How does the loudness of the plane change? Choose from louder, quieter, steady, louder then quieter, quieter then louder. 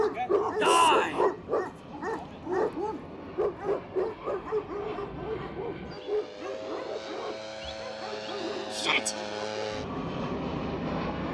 louder.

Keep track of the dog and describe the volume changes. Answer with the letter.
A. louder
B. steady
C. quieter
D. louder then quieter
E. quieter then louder
C.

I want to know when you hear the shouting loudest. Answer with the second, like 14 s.
1 s.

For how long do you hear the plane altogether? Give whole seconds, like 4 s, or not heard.
11 s.